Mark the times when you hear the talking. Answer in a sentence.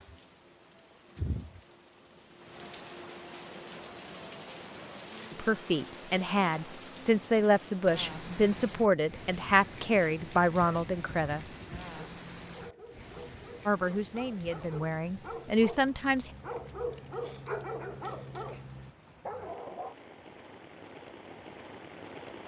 The talking can be heard from 5.3 to 11.9 s and from 13.7 to 16.3 s.